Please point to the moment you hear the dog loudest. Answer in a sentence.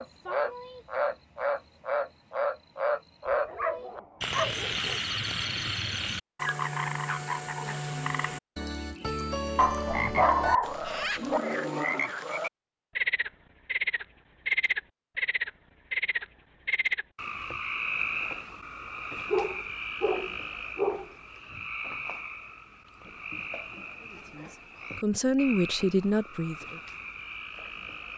The loudest moment of the dog is at 10 seconds.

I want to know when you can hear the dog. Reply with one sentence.
The dog can be heard from 3.2 to 5.0 s, from 9.6 to 11.4 s and from 19.3 to 21.6 s.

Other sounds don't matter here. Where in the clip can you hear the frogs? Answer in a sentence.
You can hear the frogs from 0.0 to 28.1 s.